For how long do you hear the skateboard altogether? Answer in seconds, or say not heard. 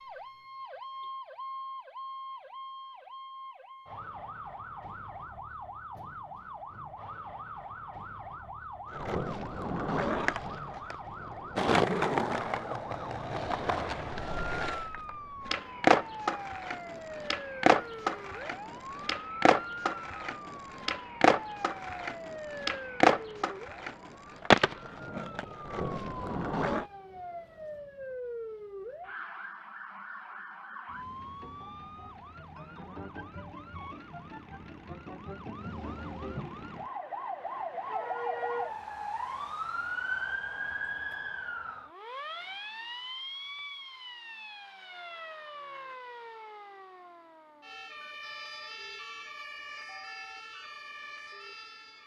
18 s.